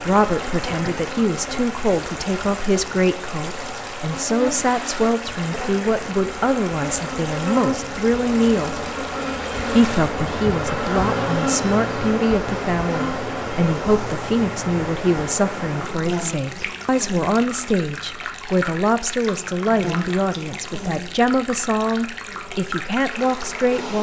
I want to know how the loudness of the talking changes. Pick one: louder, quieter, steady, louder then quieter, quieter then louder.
steady.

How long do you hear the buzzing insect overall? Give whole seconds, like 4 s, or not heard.
24 s.